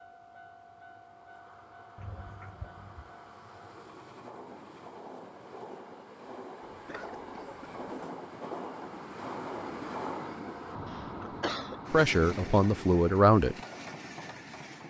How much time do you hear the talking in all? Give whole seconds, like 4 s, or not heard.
2 s.